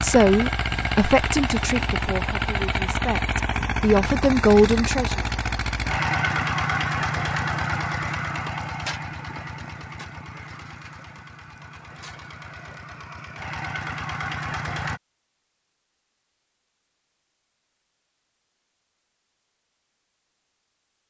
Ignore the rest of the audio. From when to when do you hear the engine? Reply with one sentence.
The engine can be heard from 0.0 to 15.0 s.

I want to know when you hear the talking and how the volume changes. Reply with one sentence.
The talking can be heard from 0.0 to 5.2 s, getting quieter then louder.